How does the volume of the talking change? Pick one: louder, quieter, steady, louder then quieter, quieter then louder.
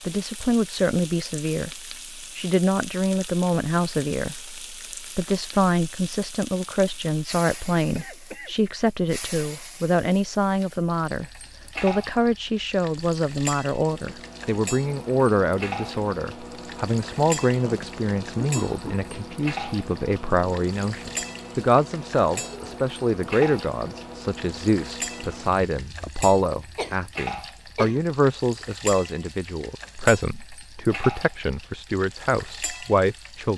steady.